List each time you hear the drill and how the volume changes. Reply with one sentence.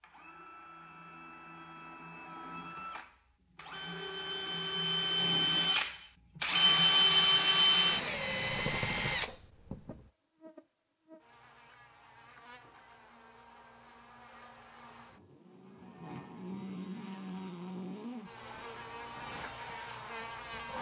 The drill can be heard from 0.0 to 9.9 s, getting louder; and briefly from 18.4 to 20.7 s.